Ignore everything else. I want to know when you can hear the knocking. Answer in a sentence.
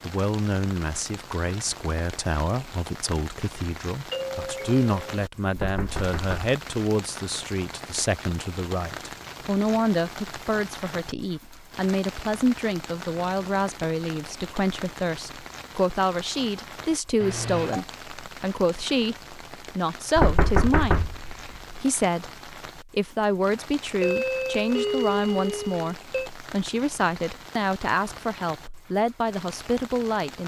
The knocking can be heard from 5.5 to 6.4 s and from 20.1 to 21.8 s.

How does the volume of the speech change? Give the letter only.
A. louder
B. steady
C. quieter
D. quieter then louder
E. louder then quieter
B.